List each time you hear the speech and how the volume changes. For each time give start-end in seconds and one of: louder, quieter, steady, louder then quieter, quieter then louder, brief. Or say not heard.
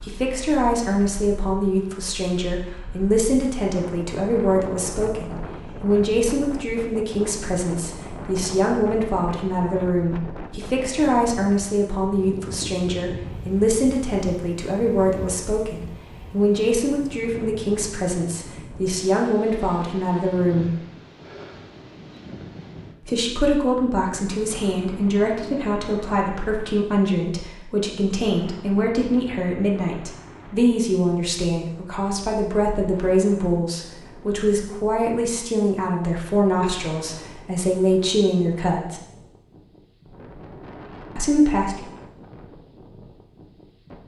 0.1-20.7 steady
23.1-39.0 steady
41.1-41.9 brief.